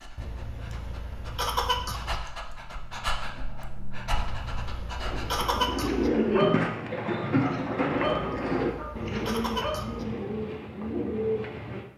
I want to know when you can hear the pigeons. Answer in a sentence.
You can hear the pigeons from 5.0 to 11.8 s.